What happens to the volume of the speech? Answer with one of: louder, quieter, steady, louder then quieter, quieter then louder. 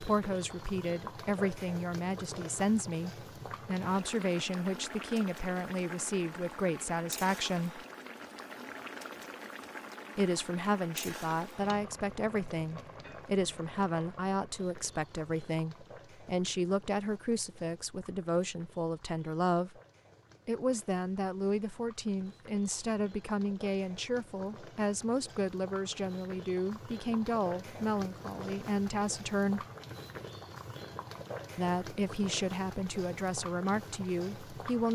steady.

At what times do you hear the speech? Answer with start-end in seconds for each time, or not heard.
0.0-7.8, 10.2-19.7, 20.4-29.6, 31.6-34.9.